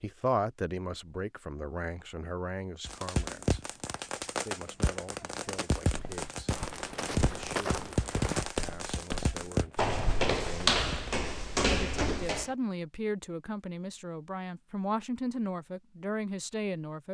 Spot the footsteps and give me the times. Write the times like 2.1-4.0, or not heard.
5.9-12.5.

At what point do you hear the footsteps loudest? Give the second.
11 s.